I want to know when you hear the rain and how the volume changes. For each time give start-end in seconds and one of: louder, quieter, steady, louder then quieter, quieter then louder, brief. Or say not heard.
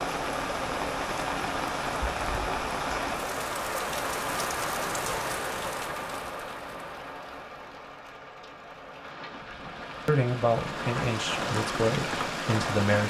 0.0-13.0 quieter then louder.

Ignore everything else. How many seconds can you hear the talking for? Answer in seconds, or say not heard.
3 s.